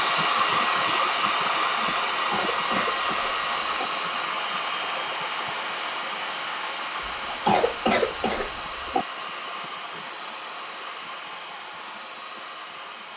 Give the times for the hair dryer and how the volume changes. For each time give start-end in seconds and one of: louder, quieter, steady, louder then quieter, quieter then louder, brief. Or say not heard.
0.0-13.1 quieter.